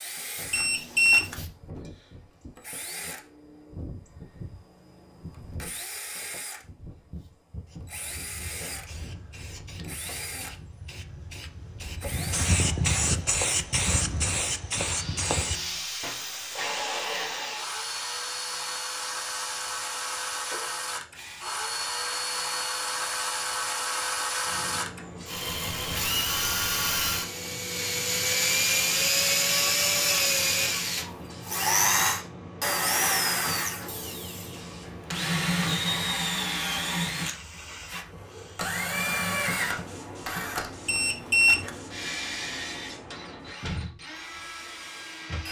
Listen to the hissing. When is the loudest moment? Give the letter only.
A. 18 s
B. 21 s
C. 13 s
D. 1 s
C.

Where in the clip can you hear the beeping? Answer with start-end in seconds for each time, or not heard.
0.5-1.4, 40.9-41.8.